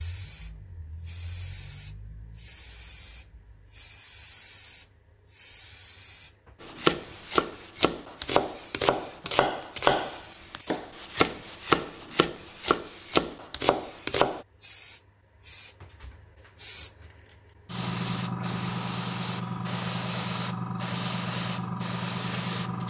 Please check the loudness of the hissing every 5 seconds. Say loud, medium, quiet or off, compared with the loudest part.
quiet, quiet, quiet, loud, loud.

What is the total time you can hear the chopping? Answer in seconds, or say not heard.
8 s.